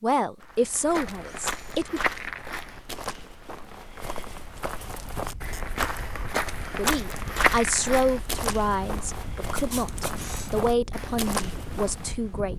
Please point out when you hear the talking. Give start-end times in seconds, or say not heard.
0.0-2.0, 6.8-12.5.